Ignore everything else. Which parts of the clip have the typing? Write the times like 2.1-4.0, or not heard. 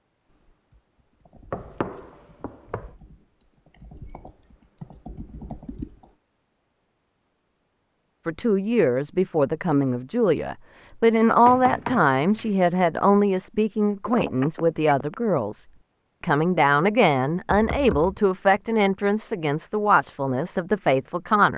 0.3-6.2.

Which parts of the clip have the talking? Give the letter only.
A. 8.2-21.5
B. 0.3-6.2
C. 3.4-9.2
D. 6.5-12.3
A.